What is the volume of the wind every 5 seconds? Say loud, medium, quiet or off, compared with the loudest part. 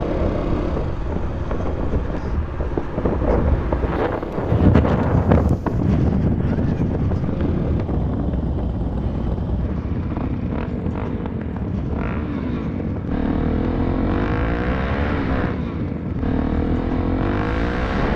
loud, loud, medium, medium.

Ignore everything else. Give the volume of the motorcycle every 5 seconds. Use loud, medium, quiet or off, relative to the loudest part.
medium, medium, loud, loud.